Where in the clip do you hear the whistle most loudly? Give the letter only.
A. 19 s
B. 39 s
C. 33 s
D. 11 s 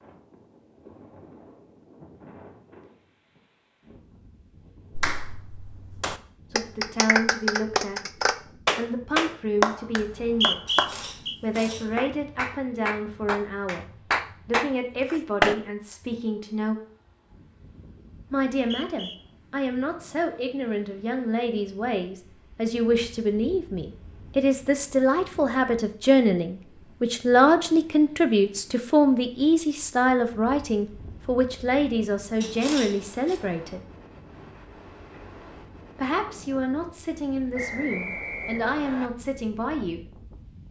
D.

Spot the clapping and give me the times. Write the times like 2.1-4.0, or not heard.
5.0-15.6.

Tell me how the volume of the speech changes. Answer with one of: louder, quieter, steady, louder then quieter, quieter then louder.
louder then quieter.